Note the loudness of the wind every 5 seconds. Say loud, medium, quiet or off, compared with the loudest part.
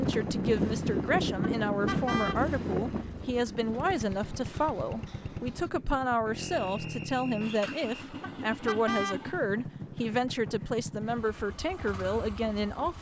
loud, quiet, quiet.